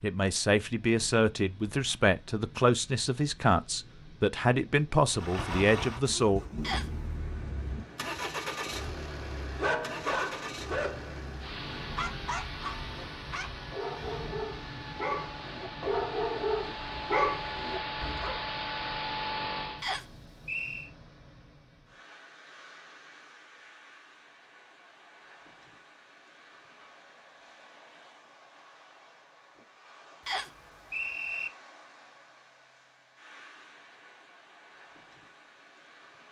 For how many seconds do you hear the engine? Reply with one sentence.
The engine can be heard for 15 seconds in total.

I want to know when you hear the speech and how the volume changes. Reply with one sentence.
The speech can be heard from 0.0 to 6.4 s, at a steady volume.